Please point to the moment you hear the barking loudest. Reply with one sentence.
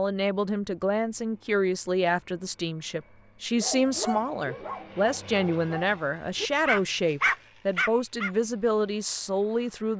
The volume of the barking peaks at 7 seconds.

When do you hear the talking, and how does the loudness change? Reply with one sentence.
You can hear the talking from 0.0 to 9.9 s, at a steady volume.